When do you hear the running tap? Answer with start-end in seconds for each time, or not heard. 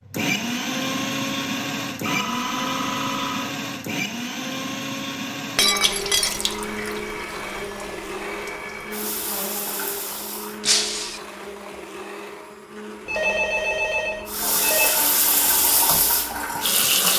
5.7-10.6, 14.2-17.1.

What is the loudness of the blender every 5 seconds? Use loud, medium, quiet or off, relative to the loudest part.
loud, medium, medium, quiet.